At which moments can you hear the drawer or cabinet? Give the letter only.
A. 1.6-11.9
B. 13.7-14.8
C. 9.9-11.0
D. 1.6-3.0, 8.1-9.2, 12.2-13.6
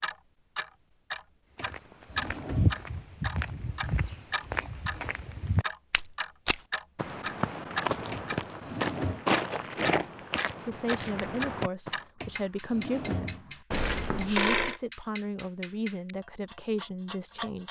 D.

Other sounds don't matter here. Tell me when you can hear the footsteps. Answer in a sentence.
You can hear the footsteps from 1.6 to 11.9 s.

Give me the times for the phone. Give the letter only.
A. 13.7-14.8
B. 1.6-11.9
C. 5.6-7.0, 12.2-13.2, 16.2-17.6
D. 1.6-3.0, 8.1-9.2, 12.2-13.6
A.